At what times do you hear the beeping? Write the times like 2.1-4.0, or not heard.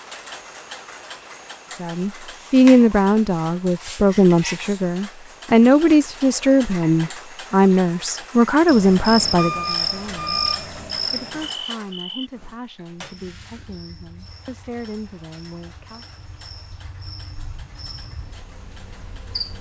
9.0-10.7.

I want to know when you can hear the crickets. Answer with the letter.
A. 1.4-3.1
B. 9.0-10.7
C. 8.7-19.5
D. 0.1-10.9
C.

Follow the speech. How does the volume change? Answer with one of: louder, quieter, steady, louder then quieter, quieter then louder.
quieter.